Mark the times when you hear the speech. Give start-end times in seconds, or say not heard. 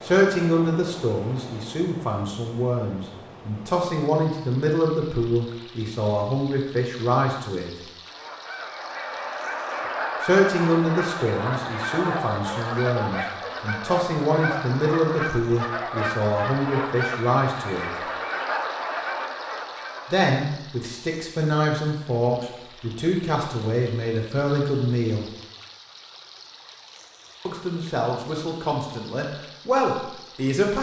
0.0-7.7, 10.2-17.9, 20.1-25.2, 27.4-30.7.